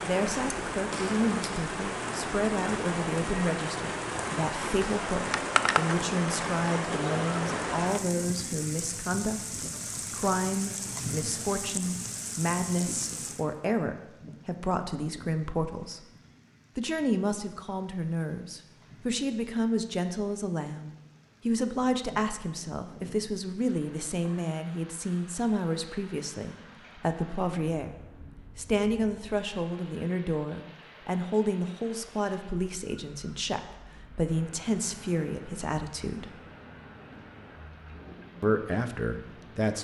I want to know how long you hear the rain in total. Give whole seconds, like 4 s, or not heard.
40 s.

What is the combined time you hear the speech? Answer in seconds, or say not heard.
36 s.